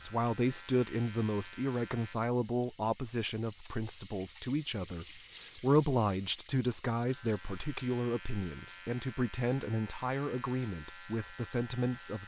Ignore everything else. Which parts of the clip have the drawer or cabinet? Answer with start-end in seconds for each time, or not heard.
not heard.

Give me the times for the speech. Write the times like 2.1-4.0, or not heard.
0.0-12.2.